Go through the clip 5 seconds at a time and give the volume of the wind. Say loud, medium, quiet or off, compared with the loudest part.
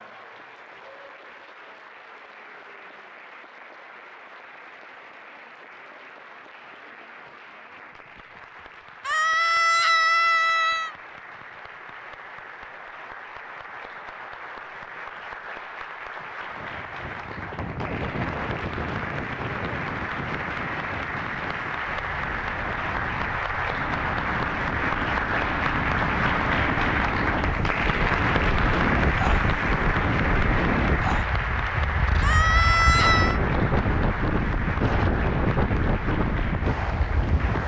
off, off, off, medium, medium, loud, loud, loud.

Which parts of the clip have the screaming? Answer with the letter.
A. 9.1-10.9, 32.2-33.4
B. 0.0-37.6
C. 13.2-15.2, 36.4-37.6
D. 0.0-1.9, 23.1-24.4
A.